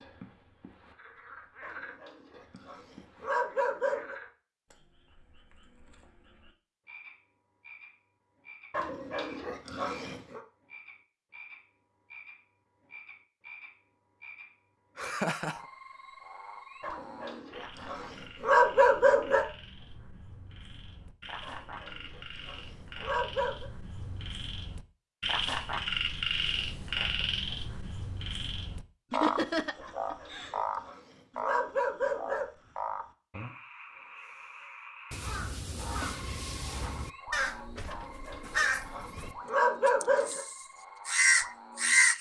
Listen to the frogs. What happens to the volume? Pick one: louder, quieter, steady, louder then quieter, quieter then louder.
louder then quieter.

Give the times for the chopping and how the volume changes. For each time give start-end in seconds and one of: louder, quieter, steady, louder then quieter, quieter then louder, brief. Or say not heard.
not heard.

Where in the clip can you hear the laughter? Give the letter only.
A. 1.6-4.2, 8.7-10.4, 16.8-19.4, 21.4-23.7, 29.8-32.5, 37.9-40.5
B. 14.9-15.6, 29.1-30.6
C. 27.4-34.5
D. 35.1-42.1
B.